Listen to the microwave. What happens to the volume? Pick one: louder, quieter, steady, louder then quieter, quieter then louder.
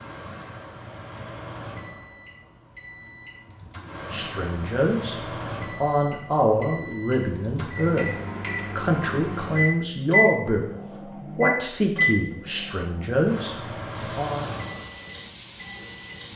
louder then quieter.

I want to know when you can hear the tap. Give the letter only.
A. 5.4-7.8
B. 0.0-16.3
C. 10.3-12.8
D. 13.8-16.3
D.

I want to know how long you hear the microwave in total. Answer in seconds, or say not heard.
16 s.